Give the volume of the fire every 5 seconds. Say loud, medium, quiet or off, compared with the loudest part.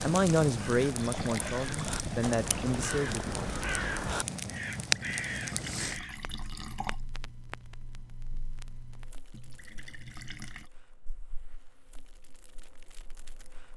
loud, medium, quiet.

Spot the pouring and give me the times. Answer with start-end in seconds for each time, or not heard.
0.9-2.8, 4.7-7.0, 9.3-10.7.